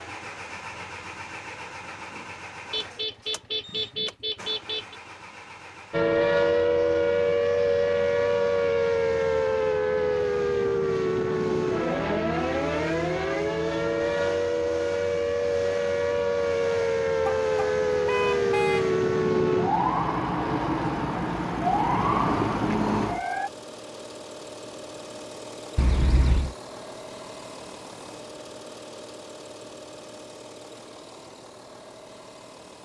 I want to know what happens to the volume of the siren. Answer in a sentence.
The loudness of the siren stays about the same.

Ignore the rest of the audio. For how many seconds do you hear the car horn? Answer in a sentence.
The car horn can be heard for 5 seconds in total.